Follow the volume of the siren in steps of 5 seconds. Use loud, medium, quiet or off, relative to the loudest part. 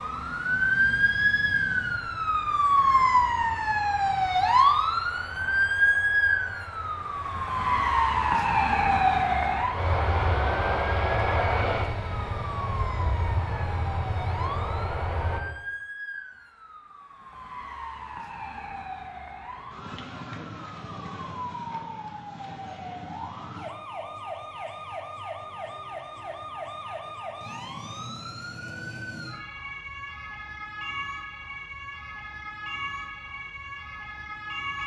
loud, loud, quiet, quiet, quiet, quiet, quiet.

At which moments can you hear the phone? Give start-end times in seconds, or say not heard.
not heard.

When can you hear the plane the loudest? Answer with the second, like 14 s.
11 s.